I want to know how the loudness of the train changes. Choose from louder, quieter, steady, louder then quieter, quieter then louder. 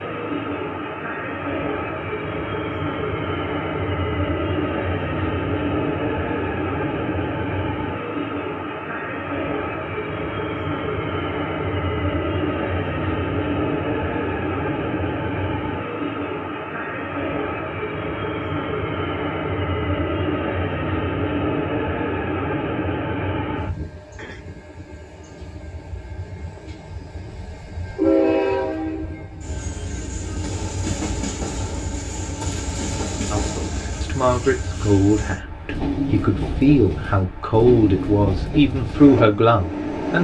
steady.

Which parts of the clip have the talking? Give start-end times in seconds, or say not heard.
33.3-40.1.